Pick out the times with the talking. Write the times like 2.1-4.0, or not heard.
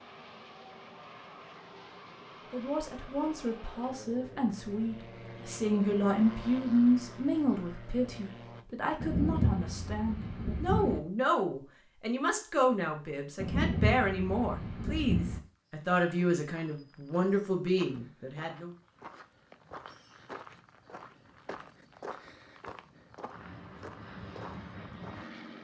2.5-18.7.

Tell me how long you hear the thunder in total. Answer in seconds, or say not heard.
4 s.